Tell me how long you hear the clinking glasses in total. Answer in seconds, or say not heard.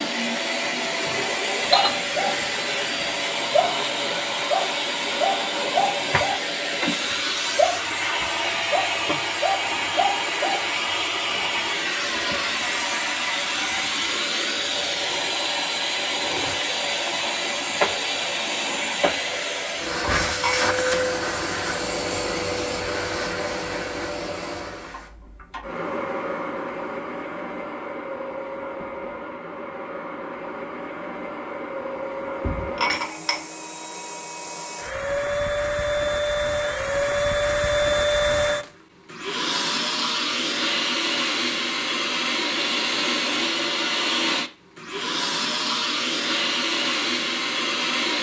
3 s.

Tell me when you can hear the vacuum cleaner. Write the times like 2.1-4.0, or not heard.
0.0-48.1.